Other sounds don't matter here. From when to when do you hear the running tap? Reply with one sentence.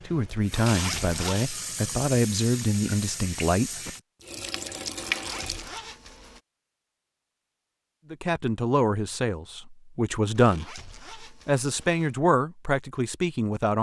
You can hear the running tap from 0.0 to 5.8 s.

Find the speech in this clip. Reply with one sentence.
You can hear the speech from 0.1 to 3.8 s and from 8.1 to 13.7 s.